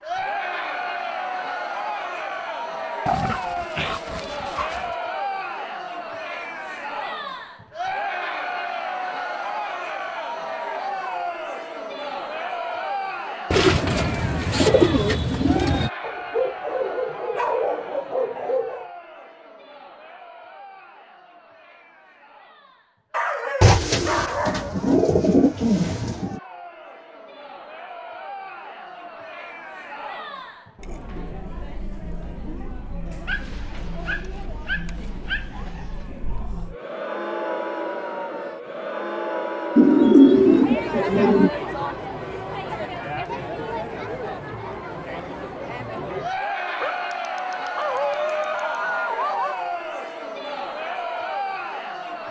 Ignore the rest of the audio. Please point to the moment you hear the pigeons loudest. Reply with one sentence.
The volume of the pigeons peaks at 40 seconds.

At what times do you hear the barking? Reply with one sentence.
The barking can be heard from 3.0 to 4.9 s, from 16.0 to 18.9 s, from 23.1 to 24.9 s, from 33.2 to 35.9 s and from 46.8 to 49.6 s.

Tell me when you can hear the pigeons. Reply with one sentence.
You can hear the pigeons from 13.5 to 15.9 s, from 23.6 to 26.4 s and from 39.8 to 41.5 s.